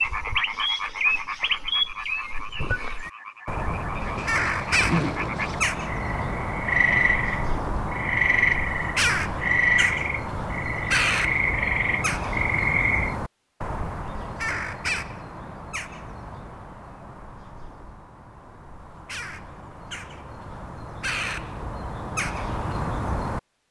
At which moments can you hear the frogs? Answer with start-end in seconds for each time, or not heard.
0.0-13.2.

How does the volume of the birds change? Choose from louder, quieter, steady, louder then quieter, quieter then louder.
quieter.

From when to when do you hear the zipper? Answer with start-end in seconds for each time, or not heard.
4.0-5.6.